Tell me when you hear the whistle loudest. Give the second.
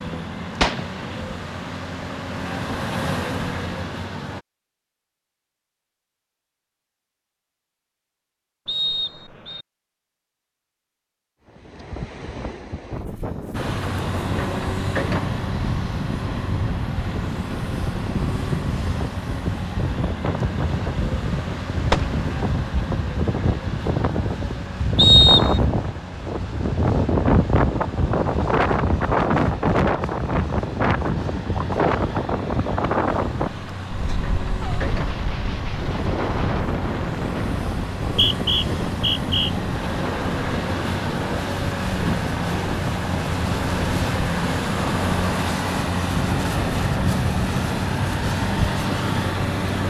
25 s.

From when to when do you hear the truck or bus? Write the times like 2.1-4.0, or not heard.
0.0-4.5, 13.5-49.8.